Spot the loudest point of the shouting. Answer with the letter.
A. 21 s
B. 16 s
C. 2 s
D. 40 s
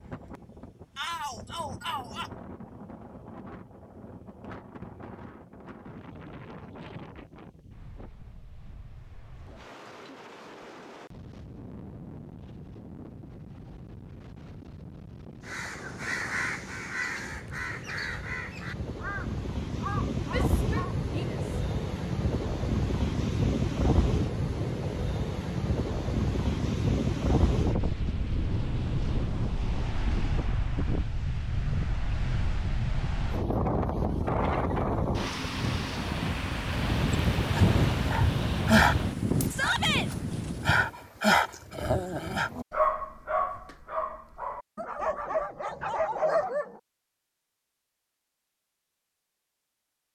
D.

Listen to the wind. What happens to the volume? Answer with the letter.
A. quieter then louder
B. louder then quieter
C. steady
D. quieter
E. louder
E.